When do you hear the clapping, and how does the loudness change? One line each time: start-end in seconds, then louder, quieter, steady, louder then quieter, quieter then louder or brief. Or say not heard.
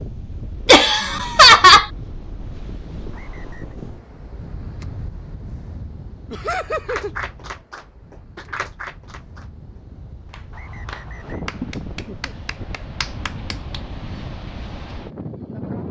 6.7-13.8 quieter then louder.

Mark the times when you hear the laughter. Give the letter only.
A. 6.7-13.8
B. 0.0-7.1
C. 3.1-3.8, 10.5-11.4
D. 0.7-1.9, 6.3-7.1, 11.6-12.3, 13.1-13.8
D.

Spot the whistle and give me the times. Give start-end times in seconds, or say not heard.
3.1-3.8, 10.5-11.4.